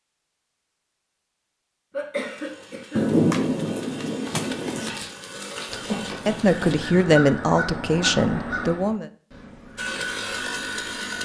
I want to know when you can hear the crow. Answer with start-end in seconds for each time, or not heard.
5.7-11.2.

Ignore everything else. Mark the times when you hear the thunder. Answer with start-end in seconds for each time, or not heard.
3.0-4.9.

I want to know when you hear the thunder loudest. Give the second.
3 s.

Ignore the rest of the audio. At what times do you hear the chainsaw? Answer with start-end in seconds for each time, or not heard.
2.1-7.0, 9.8-11.2.